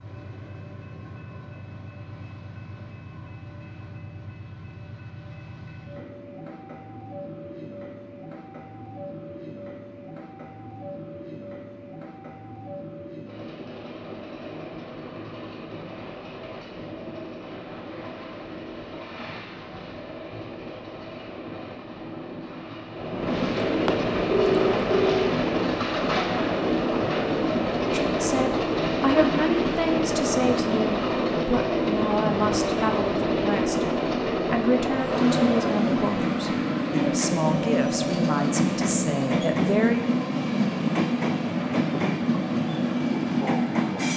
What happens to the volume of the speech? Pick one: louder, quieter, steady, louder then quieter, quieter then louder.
steady.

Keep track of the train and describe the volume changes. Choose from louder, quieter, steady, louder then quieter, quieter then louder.
louder.